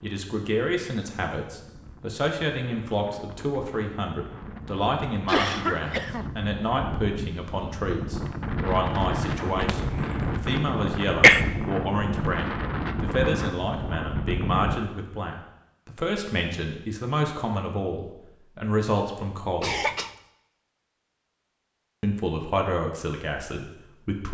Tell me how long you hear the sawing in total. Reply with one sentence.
The sawing can't be heard in this clip.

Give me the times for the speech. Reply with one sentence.
The speech can be heard from 0.0 to 19.8 s and from 22.0 to 24.2 s.